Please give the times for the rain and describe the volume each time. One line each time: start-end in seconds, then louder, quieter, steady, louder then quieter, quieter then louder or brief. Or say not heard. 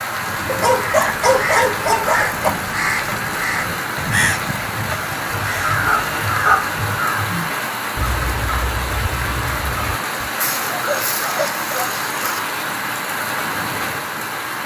0.0-14.6 steady.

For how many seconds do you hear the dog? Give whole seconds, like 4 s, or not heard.
6 s.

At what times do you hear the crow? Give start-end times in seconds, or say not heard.
1.0-10.3.